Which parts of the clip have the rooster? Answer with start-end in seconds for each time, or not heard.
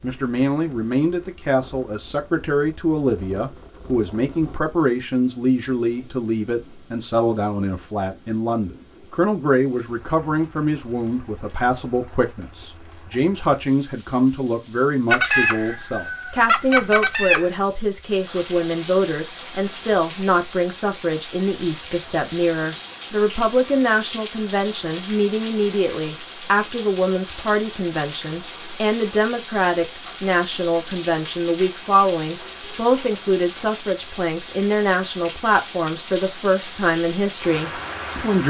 15.1-17.6.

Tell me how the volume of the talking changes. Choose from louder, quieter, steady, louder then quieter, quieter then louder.
steady.